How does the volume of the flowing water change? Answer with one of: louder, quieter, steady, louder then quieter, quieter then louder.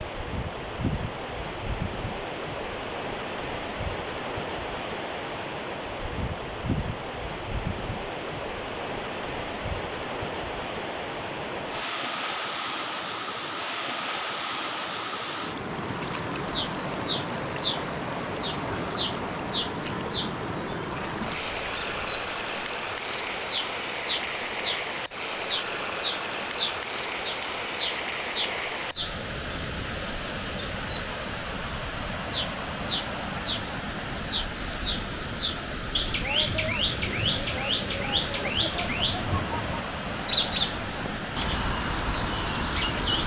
steady.